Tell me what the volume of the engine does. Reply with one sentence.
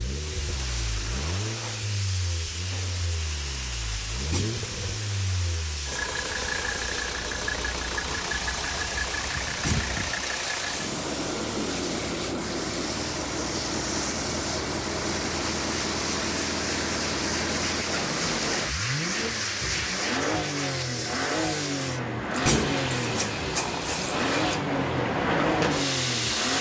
The volume of the engine goes up.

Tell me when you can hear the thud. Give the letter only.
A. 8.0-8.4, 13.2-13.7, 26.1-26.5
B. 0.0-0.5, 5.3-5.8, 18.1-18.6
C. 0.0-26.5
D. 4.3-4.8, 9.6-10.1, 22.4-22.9
D.